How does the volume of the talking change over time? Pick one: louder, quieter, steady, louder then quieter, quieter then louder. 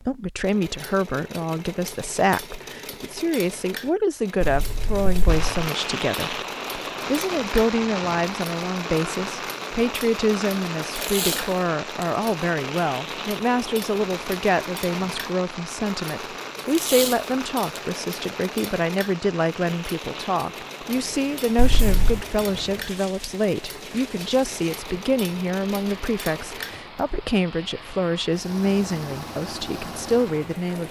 steady.